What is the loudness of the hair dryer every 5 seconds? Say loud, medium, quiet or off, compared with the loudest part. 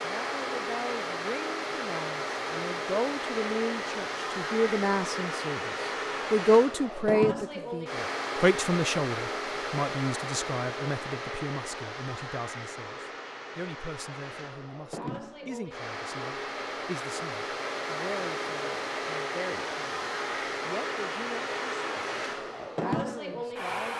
loud, loud, medium, loud, loud.